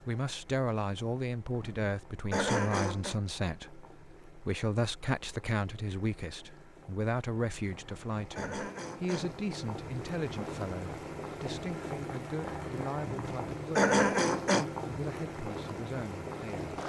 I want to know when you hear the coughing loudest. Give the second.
14 s.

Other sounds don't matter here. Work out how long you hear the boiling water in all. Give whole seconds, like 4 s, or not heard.
17 s.